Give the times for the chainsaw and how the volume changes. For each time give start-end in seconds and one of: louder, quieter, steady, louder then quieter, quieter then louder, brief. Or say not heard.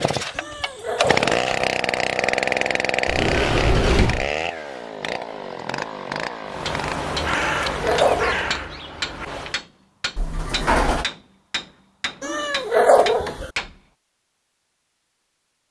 0.0-8.6 quieter.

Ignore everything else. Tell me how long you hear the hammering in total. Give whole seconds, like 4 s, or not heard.
7 s.